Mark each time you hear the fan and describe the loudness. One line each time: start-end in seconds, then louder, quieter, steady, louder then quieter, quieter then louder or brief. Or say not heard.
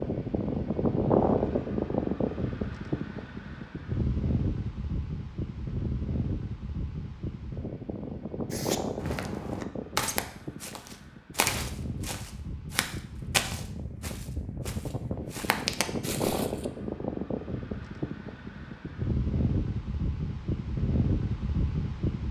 0.0-22.2 quieter then louder.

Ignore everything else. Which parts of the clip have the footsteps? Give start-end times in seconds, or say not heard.
8.5-16.6.